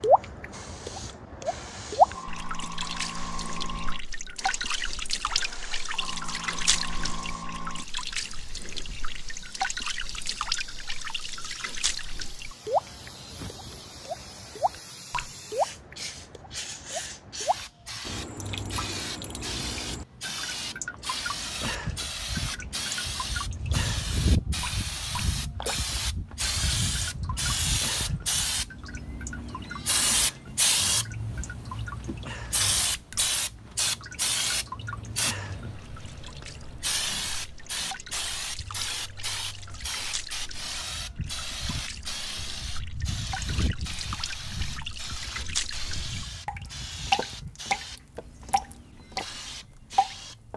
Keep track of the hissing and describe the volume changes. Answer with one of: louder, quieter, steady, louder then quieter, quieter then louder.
louder then quieter.